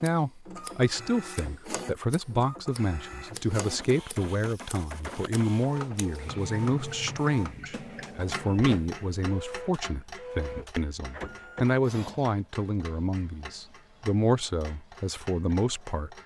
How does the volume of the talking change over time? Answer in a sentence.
The loudness of the talking stays about the same.